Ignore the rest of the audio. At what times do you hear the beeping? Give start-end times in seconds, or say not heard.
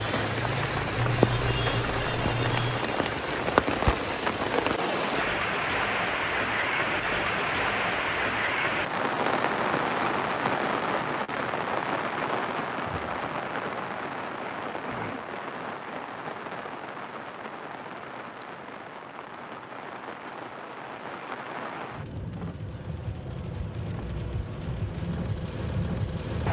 0.9-2.9.